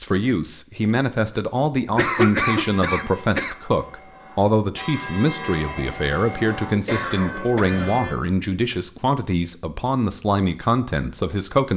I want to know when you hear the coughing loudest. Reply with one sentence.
The volume of the coughing peaks at 2 seconds.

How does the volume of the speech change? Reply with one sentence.
The volume of the speech stays about the same.